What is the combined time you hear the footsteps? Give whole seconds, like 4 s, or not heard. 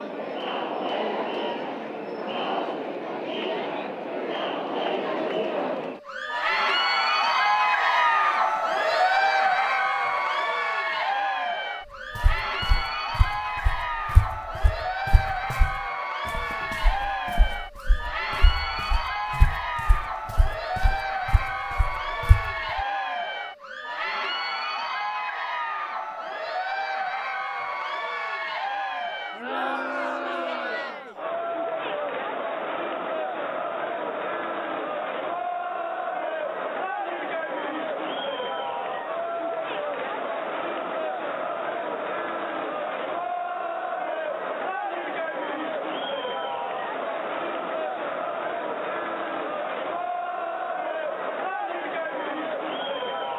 11 s.